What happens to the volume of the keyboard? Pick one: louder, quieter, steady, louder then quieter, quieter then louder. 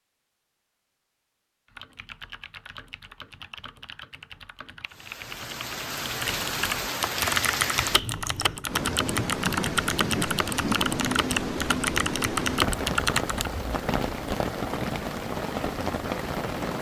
louder.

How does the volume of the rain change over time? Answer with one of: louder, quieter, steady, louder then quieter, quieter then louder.
steady.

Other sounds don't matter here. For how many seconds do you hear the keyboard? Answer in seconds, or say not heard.
12 s.